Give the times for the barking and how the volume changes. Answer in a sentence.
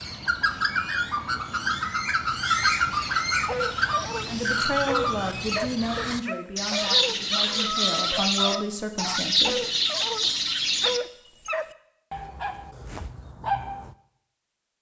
You can hear the barking from 3.4 to 13.9 s, at a steady volume.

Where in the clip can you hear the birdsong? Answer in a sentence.
The birdsong can be heard from 0.0 to 11.0 s.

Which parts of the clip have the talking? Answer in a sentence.
You can hear the talking from 4.2 to 9.7 s.